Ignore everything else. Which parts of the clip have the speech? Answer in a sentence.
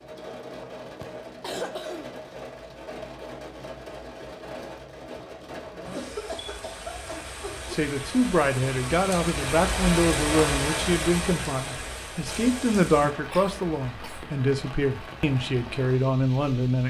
The speech can be heard from 7.7 to 16.8 s.